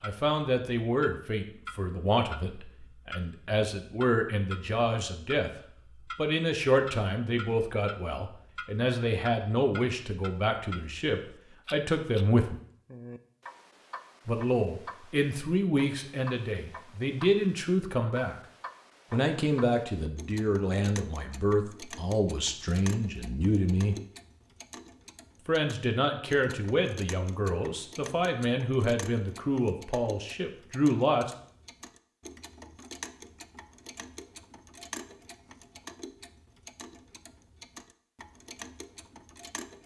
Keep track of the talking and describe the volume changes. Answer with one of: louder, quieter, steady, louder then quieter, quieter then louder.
steady.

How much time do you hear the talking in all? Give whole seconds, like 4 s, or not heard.
27 s.